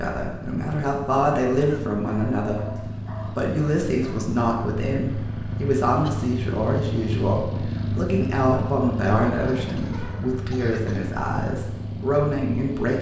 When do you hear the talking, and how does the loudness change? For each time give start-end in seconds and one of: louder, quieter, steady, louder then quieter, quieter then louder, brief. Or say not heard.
0.0-12.9 steady.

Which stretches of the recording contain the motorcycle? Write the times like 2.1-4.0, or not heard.
0.0-12.9.